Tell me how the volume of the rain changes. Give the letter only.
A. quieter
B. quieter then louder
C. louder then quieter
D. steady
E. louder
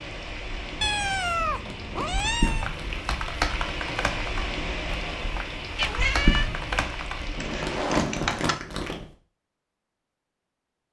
E.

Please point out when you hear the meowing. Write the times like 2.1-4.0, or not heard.
0.8-2.7, 5.8-6.5.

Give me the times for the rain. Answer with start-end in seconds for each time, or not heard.
0.0-8.1.